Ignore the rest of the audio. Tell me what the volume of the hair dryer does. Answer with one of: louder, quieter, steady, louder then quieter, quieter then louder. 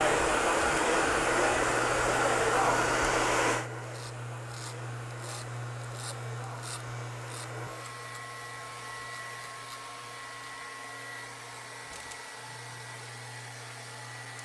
quieter.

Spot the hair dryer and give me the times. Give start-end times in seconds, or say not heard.
0.0-14.4.